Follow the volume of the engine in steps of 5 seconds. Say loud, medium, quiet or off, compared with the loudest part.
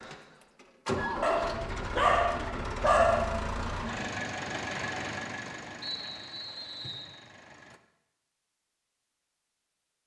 loud, medium.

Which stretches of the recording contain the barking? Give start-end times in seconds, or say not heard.
1.2-3.2.